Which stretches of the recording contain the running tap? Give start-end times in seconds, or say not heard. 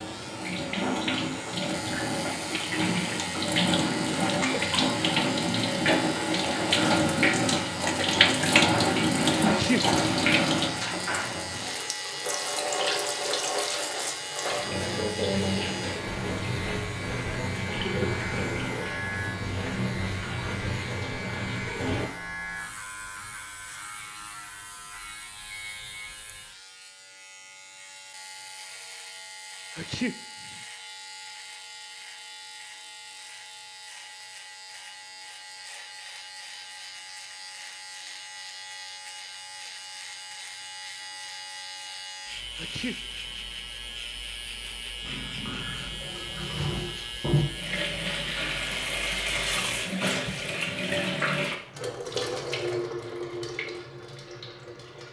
0.0-22.1, 45.0-55.0.